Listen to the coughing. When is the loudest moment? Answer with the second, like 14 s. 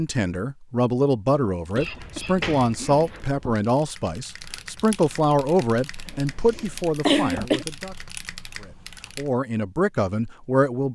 7 s.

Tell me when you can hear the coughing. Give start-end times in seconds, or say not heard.
1.7-3.5, 6.0-7.7.